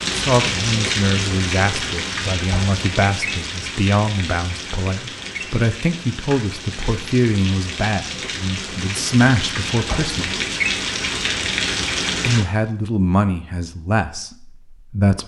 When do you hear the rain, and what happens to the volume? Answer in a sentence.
The rain can be heard from 0.0 to 12.4 s, getting quieter then louder.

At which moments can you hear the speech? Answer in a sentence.
You can hear the speech from 0.1 to 10.4 s and from 12.2 to 15.2 s.